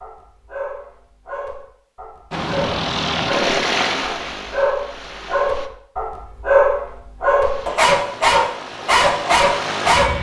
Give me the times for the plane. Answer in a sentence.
The plane can be heard from 2.3 to 5.7 s and from 7.4 to 10.1 s.